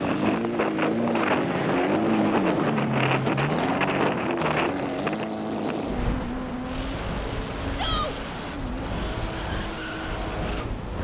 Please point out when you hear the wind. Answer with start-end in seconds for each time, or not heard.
0.0-10.9.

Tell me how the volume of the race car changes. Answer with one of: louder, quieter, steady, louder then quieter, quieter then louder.
quieter.